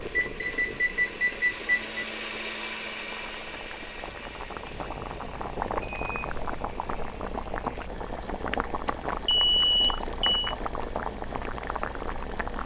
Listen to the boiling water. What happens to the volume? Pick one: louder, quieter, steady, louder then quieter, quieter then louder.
louder.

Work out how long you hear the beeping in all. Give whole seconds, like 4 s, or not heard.
5 s.